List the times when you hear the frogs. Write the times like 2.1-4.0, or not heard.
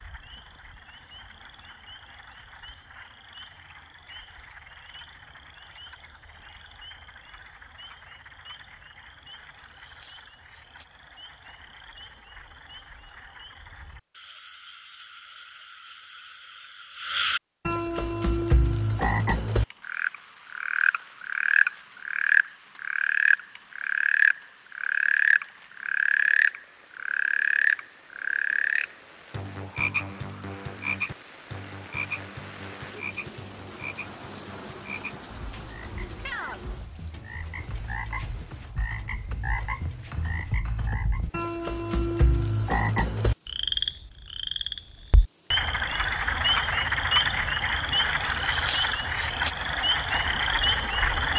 0.0-51.3.